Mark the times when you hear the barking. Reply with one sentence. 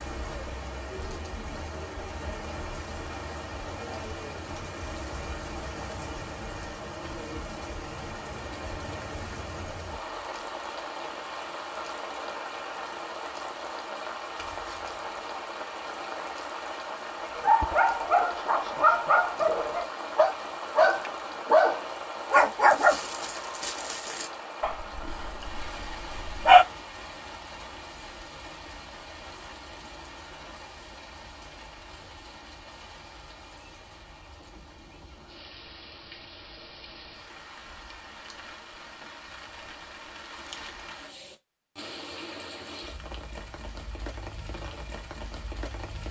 The barking can be heard from 17.4 to 26.6 s.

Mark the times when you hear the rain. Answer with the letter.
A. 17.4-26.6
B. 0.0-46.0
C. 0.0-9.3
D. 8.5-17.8
B.